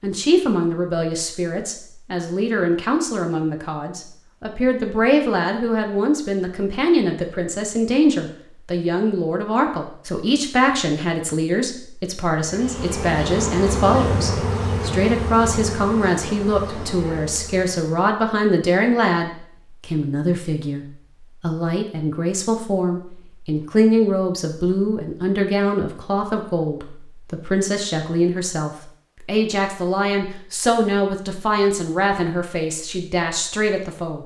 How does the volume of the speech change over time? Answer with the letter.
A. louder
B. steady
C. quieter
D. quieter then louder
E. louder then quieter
B.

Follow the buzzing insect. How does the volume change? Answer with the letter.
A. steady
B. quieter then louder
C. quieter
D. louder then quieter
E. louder
C.